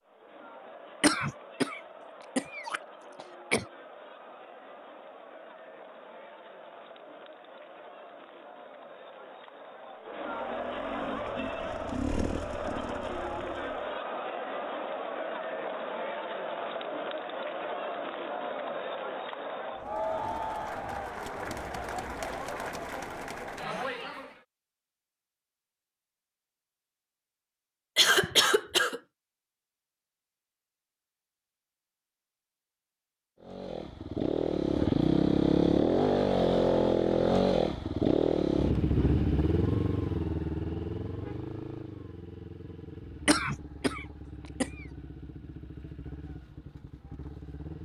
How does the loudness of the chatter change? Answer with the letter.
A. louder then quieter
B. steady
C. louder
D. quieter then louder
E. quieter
C.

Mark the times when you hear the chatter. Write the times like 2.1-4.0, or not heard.
0.0-24.4.